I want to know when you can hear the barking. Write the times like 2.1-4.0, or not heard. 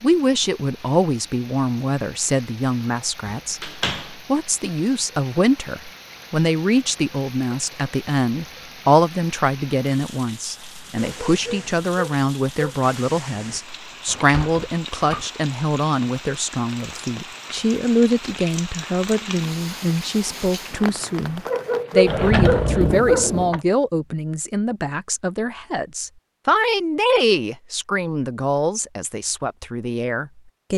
10.9-12.8, 21.4-23.3.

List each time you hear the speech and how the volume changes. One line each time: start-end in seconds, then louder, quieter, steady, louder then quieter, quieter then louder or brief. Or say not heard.
0.0-30.7 steady.